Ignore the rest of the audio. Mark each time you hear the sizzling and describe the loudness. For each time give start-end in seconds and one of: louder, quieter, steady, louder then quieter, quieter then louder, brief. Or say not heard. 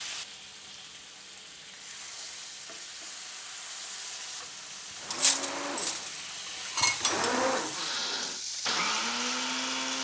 0.0-9.9 louder.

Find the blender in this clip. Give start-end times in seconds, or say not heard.
4.9-9.9.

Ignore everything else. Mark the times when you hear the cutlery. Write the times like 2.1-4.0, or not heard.
5.1-7.3.